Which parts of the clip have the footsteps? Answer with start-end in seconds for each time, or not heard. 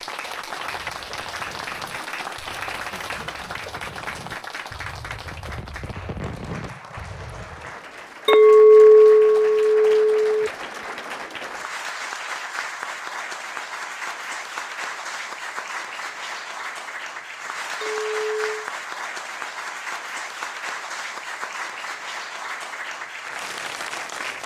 not heard.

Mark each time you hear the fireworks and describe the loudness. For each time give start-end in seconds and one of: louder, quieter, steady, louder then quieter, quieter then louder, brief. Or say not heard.
0.8-7.8 louder.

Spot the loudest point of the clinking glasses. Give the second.
9 s.